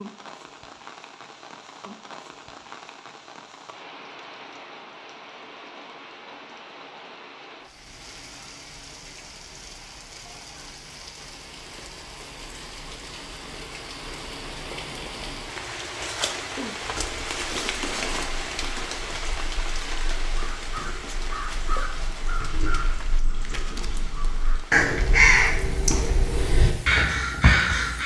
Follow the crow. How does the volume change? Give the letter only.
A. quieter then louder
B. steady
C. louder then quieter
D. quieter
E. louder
E.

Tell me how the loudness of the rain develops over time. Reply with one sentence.
The volume of the rain goes up, then down.